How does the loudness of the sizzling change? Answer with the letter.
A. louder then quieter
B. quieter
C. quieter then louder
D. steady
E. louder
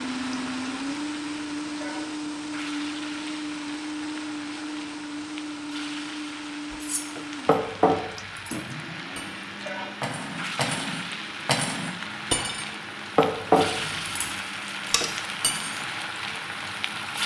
E.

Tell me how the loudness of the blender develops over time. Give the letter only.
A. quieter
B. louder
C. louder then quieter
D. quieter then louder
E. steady
A.